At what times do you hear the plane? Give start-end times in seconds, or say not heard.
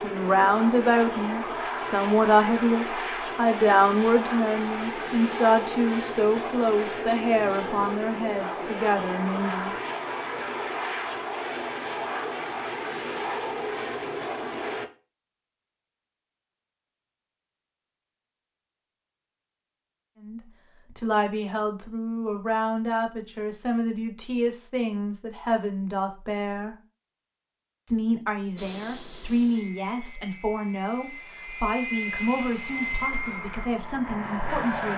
0.0-14.9, 28.6-34.9.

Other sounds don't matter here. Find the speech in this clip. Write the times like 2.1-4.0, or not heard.
0.0-9.8, 20.2-26.8, 27.9-34.9.